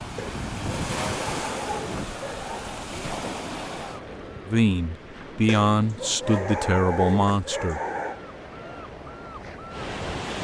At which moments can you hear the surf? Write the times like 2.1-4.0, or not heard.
0.0-10.4.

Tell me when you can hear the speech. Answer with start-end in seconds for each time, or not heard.
4.5-7.8.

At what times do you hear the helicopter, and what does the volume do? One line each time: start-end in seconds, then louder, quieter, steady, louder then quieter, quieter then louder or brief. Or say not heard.
not heard.